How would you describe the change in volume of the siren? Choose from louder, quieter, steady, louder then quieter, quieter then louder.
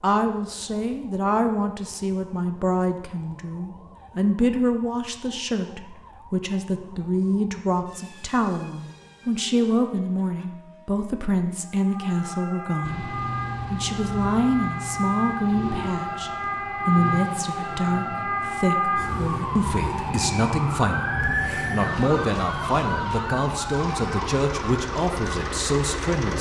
louder.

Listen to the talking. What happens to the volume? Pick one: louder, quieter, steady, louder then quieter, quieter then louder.
steady.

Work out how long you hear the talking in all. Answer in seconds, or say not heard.
26 s.